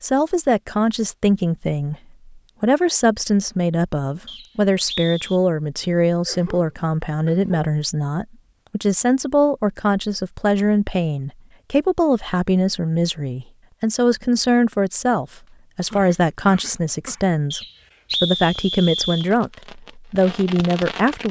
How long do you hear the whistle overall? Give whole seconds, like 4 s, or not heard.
3 s.